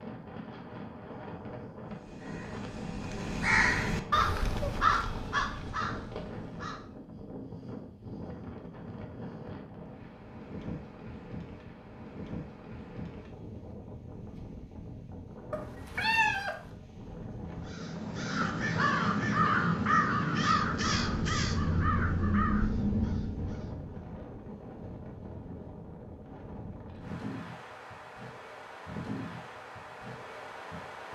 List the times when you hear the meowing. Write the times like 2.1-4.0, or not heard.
15.5-16.6.